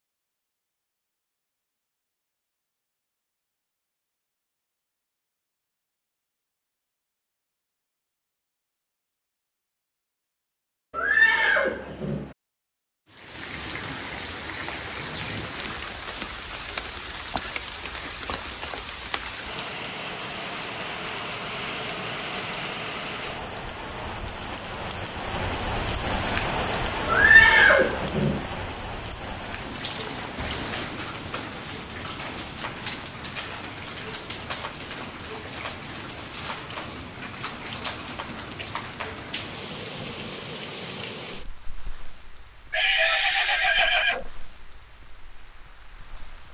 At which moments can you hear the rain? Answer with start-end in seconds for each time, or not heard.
13.1-46.4.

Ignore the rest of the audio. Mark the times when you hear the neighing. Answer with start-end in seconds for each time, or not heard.
10.9-12.3, 27.1-28.4, 42.7-44.3.